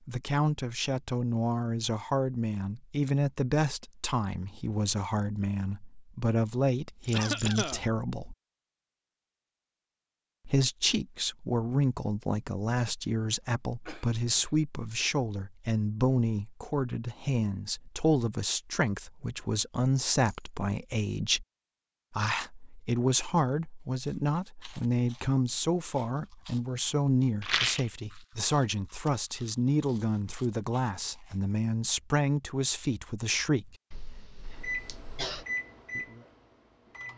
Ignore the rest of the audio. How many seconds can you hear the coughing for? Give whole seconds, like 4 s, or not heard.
4 s.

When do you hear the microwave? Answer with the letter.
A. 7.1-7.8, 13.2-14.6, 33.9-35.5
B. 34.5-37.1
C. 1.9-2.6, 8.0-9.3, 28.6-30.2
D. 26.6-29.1
B.